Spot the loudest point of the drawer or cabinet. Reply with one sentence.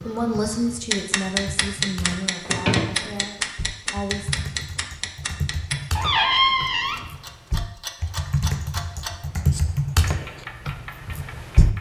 The volume of the drawer or cabinet peaks at 6 seconds.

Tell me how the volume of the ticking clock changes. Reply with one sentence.
The volume of the ticking clock goes down.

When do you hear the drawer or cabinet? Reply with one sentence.
You can hear the drawer or cabinet from 2.5 to 3.1 s and from 6.0 to 7.0 s.